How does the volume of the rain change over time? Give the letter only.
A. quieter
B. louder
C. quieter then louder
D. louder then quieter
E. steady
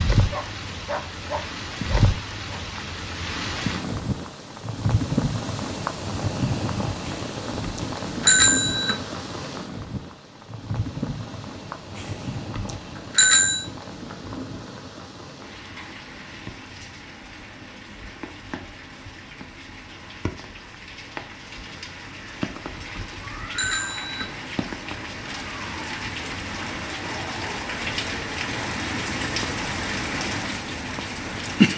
C.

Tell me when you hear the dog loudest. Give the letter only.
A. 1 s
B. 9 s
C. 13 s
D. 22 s
A.